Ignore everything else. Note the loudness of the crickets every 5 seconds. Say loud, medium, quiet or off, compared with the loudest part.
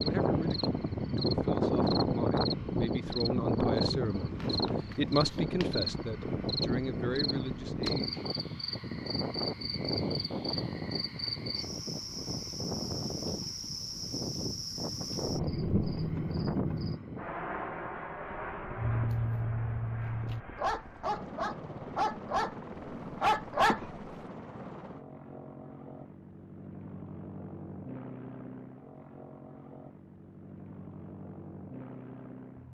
medium, medium, medium, loud, off, off, off.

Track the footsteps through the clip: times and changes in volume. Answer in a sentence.
The footsteps can't be heard in this clip.